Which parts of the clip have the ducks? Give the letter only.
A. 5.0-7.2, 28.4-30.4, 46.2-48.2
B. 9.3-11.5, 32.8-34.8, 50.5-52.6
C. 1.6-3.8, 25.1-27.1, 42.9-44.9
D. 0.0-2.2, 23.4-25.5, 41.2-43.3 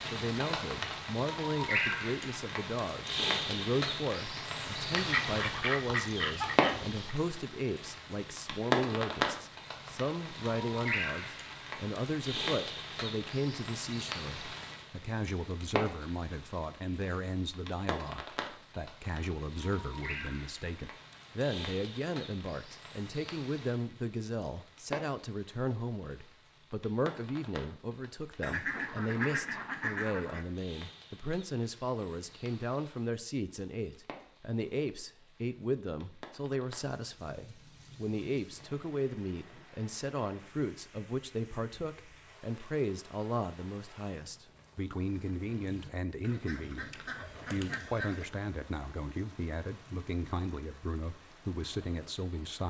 A.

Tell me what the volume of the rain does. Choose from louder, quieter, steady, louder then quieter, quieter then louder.
quieter.